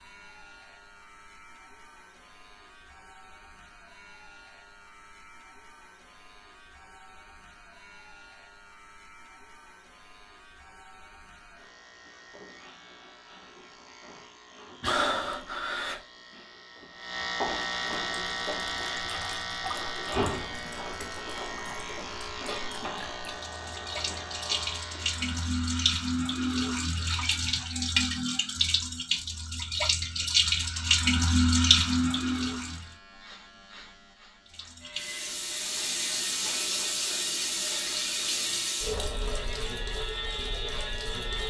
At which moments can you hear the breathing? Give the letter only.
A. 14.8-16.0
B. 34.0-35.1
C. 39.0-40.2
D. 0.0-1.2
A.